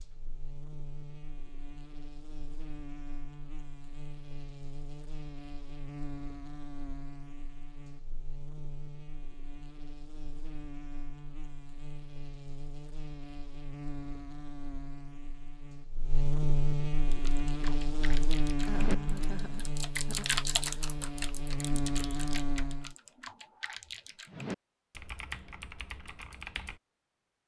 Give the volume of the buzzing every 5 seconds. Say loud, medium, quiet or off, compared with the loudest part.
quiet, medium, medium, loud, loud, off.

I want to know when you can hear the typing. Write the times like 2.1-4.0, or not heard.
17.1-26.8.